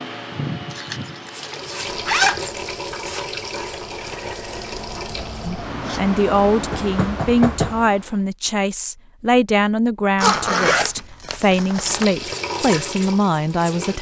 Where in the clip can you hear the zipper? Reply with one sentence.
The zipper can be heard from 0.7 to 2.6 s, from 5.2 to 6.1 s and from 10.2 to 12.1 s.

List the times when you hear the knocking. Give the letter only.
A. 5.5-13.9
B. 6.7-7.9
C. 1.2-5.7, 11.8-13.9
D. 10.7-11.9
B.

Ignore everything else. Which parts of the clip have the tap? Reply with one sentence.
You can hear the tap from 1.2 to 5.7 s and from 11.8 to 13.9 s.